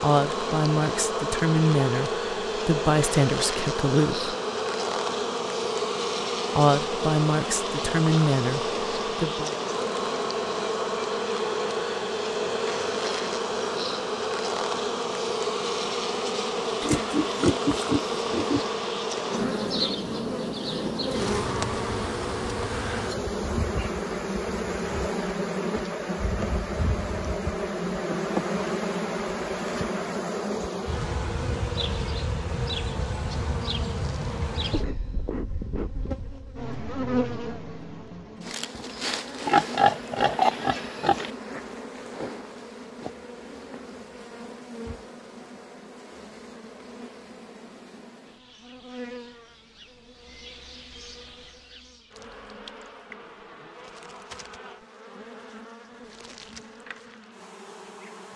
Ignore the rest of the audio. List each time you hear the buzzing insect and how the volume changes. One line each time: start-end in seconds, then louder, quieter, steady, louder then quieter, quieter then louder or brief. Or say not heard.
0.0-58.3 quieter.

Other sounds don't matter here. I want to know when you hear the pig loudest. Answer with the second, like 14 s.
40 s.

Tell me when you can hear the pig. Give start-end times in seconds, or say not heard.
16.8-18.6, 39.5-41.3.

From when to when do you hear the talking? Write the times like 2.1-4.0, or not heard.
0.0-4.3, 6.5-9.5.